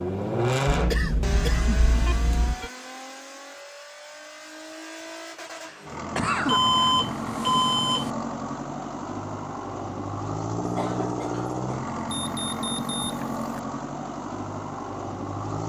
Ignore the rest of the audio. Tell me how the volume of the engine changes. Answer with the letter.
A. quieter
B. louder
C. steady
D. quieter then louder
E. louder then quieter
D.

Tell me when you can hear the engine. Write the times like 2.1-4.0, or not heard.
0.0-15.6.